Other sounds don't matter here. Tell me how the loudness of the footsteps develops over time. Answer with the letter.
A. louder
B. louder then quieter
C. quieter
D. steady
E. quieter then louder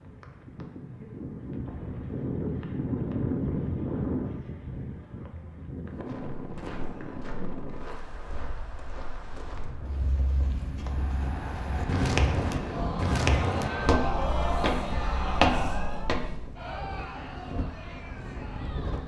A.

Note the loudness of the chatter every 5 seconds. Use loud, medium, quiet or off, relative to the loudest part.
off, quiet, loud, loud.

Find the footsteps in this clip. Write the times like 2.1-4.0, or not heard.
6.0-16.5.